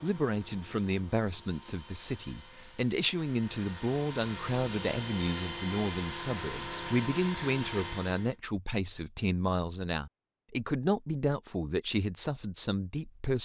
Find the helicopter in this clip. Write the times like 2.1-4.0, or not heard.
0.0-8.3.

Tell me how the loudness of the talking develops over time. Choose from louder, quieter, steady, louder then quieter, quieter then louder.
steady.